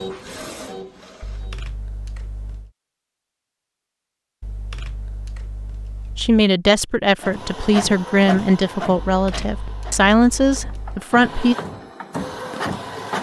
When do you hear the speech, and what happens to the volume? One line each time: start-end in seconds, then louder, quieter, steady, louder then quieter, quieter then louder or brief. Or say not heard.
6.2-11.6 steady.